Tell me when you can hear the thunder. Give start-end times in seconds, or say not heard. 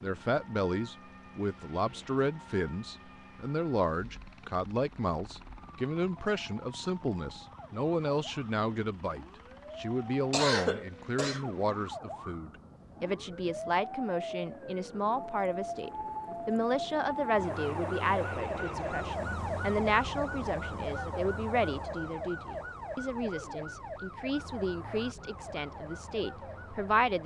not heard.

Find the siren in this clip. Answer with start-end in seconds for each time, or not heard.
0.0-27.2.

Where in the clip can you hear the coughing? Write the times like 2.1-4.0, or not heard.
10.3-11.5.